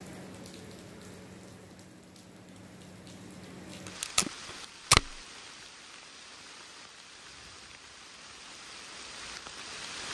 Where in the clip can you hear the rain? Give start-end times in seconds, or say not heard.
0.0-10.0.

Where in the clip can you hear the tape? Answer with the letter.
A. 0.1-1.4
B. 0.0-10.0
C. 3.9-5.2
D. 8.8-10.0
C.